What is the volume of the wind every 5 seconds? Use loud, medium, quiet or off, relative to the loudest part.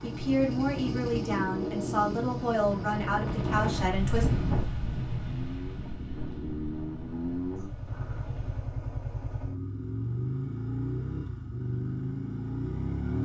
loud, medium, off.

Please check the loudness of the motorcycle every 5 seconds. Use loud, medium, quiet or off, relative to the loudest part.
loud, medium, loud.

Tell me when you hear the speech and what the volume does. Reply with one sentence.
The speech can be heard from 0.0 to 4.3 s, at a steady volume.